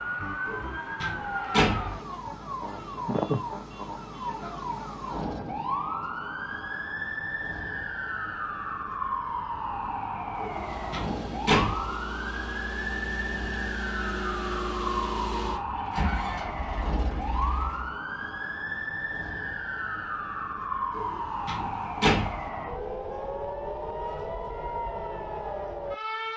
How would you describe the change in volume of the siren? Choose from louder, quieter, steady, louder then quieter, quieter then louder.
steady.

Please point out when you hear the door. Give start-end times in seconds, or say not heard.
0.5-2.0, 10.4-11.8, 20.9-22.4.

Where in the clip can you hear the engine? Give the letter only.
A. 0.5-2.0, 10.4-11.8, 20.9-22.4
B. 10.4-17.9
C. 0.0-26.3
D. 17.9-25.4
B.